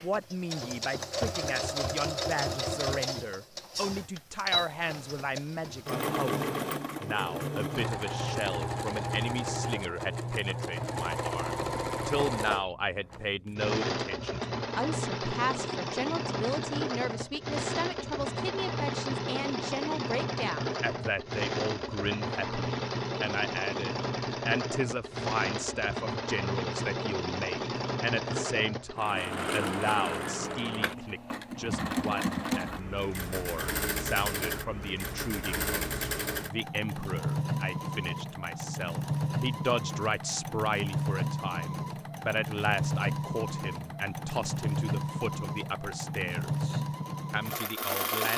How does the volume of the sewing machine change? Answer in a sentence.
The loudness of the sewing machine stays about the same.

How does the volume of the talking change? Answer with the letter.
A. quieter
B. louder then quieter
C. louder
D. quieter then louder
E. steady
E.